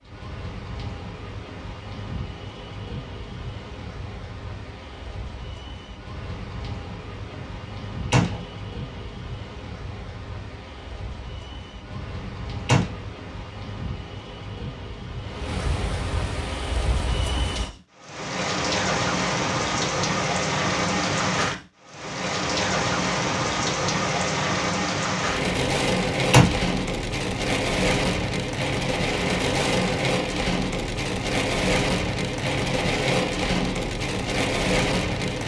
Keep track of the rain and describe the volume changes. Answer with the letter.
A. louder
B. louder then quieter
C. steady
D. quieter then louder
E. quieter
A.